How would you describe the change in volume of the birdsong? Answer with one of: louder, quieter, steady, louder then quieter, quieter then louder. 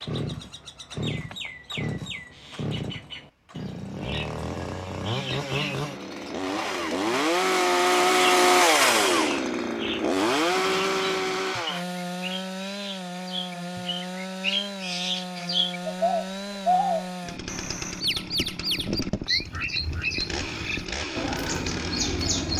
louder.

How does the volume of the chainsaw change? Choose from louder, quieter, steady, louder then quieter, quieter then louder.
louder then quieter.